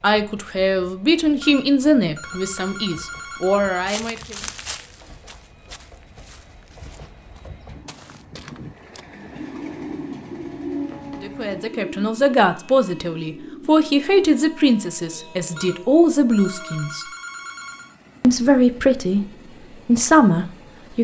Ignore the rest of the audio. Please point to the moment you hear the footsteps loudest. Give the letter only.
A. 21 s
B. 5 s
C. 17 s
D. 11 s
B.